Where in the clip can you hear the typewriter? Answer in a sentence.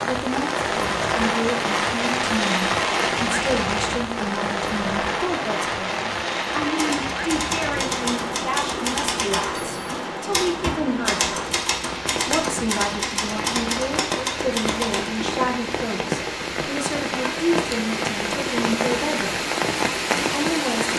The typewriter can be heard from 6.7 to 15.1 s.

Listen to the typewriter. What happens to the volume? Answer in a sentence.
The loudness of the typewriter stays about the same.